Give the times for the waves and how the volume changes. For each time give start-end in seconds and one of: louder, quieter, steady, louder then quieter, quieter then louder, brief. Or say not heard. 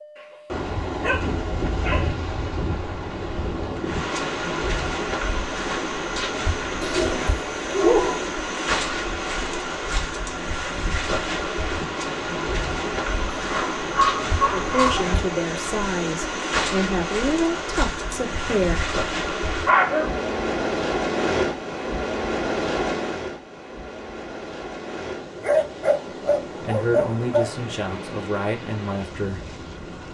0.0-30.0 quieter.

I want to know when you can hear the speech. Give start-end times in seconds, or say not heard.
14.5-18.9, 26.6-30.0.